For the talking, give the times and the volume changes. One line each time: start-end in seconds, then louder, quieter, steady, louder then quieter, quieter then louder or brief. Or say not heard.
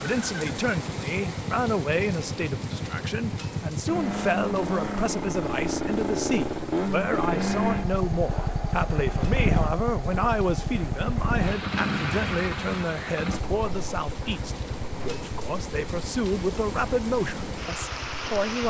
0.0-18.6 steady.